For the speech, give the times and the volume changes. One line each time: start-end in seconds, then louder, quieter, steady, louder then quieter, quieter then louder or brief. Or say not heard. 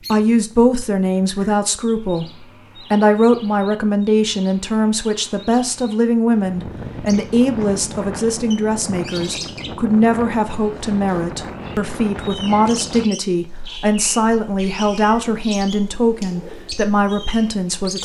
0.0-18.0 steady.